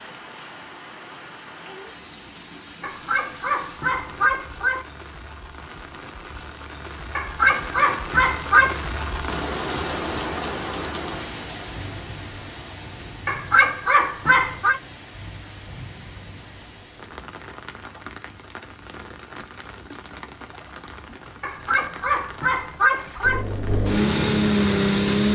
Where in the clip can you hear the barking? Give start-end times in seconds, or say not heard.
2.8-4.8, 7.2-8.8, 13.2-14.8, 21.4-23.4.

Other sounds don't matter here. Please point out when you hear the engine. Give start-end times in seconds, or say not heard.
23.2-25.3.